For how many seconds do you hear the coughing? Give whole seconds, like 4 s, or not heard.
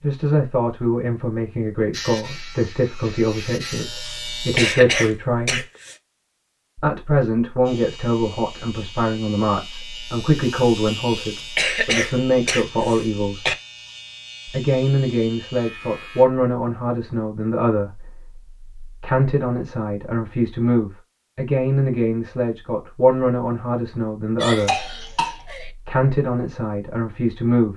5 s.